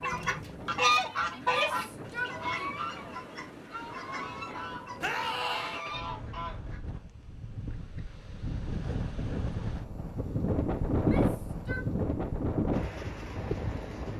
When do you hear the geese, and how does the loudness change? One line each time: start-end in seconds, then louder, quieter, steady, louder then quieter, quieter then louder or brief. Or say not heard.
0.0-6.8 quieter.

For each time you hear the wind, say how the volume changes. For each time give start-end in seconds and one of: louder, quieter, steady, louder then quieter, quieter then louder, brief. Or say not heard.
0.0-14.1 louder.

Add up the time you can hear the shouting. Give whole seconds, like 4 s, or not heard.
3 s.